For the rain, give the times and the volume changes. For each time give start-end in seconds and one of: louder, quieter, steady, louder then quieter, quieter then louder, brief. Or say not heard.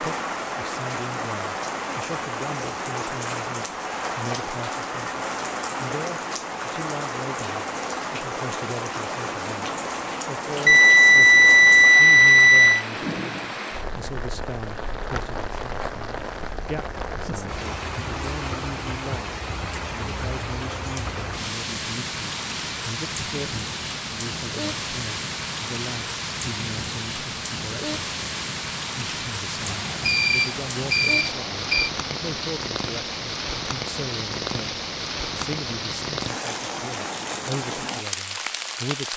0.0-39.1 steady.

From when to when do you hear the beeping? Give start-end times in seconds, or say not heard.
10.7-12.8, 29.7-31.9.